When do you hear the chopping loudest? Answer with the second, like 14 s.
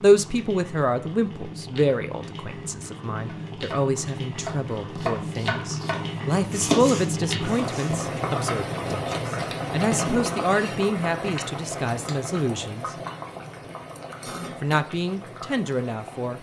7 s.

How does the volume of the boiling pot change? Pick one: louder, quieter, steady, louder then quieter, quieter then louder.
louder then quieter.